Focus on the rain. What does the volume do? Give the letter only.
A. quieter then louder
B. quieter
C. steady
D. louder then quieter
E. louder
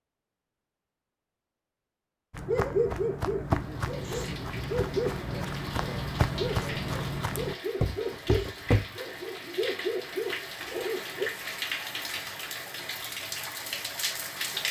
E.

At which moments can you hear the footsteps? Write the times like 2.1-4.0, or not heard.
2.3-8.9.